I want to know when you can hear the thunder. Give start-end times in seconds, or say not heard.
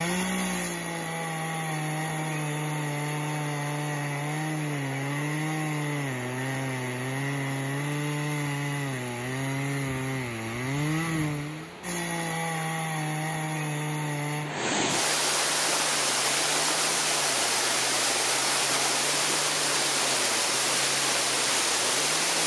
not heard.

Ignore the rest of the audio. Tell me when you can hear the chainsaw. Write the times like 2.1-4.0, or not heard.
0.0-22.4.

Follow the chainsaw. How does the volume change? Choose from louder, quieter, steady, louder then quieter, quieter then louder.
quieter.